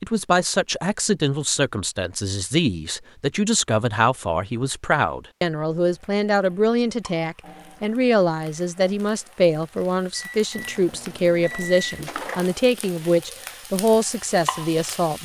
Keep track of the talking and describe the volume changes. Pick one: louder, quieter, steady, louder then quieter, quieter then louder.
steady.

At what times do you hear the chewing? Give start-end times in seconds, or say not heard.
not heard.